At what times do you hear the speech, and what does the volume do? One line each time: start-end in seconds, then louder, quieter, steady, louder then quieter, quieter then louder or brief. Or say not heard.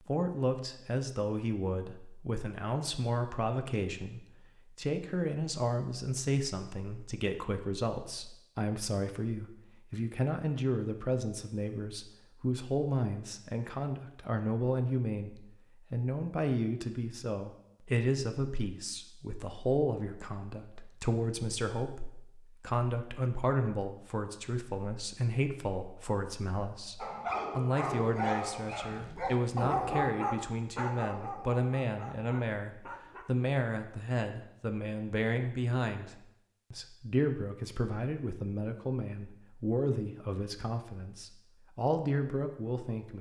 0.1-43.1 steady.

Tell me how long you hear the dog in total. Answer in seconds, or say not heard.
6 s.